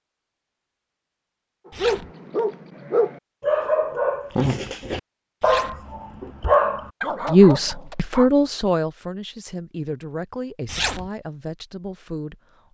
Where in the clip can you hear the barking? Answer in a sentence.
The barking can be heard from 1.8 to 8.3 s.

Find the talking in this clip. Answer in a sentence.
You can hear the talking from 7.3 to 12.7 s.